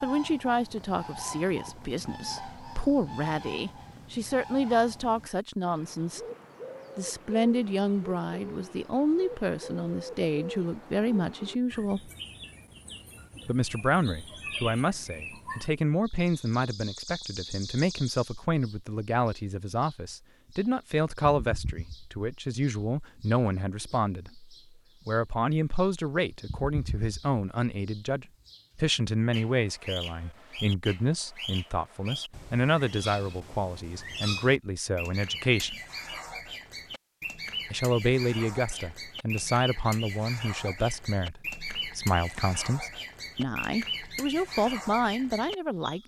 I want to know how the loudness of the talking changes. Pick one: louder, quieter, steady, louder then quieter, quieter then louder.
steady.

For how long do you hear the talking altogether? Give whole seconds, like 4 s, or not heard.
42 s.